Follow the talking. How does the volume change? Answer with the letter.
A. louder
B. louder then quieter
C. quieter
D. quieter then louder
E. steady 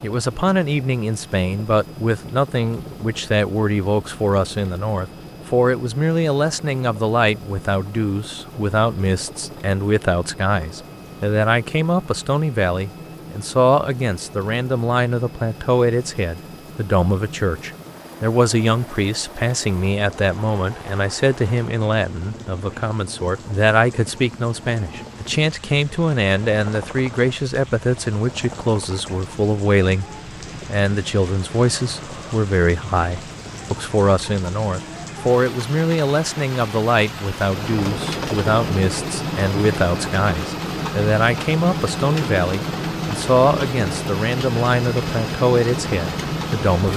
E.